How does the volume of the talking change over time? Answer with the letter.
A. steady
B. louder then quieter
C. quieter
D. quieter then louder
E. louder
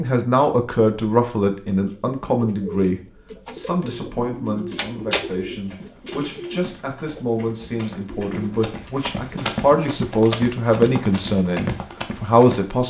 D.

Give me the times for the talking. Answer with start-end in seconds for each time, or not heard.
0.0-12.8.